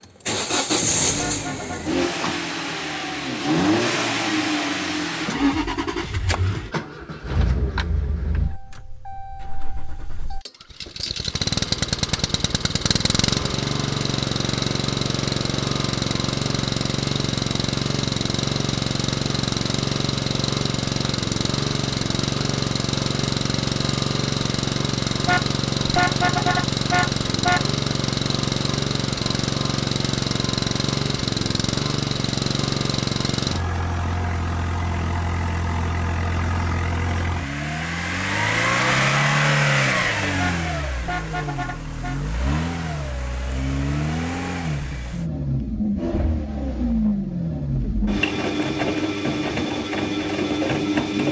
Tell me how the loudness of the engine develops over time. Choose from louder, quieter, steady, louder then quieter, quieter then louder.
steady.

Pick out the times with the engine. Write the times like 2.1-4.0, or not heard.
0.0-51.2.